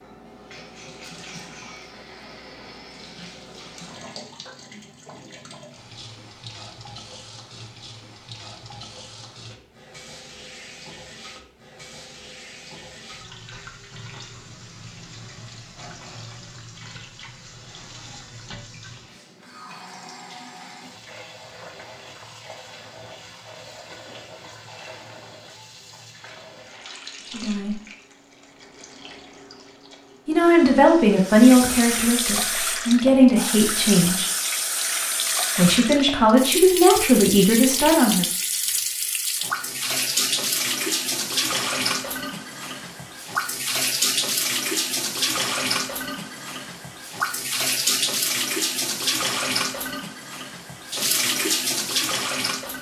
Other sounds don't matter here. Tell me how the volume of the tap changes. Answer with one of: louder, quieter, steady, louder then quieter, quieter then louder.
louder.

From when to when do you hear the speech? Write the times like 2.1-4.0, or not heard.
27.3-27.8, 30.2-34.3, 35.5-38.2.